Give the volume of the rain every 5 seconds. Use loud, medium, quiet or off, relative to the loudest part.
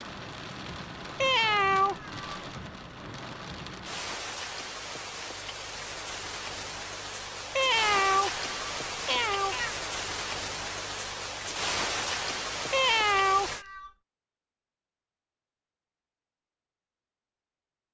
medium, loud, loud, off.